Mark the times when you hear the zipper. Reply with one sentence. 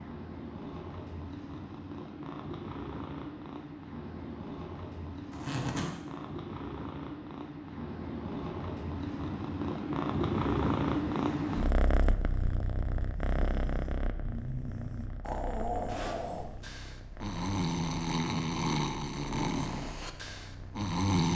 You can hear the zipper from 5.3 to 6.0 s and from 15.8 to 16.7 s.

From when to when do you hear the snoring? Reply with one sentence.
The snoring can be heard from 13.1 to 21.3 s.